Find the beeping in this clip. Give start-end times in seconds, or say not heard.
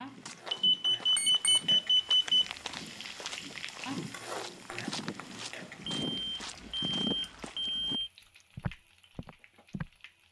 0.5-2.5, 6.0-8.1.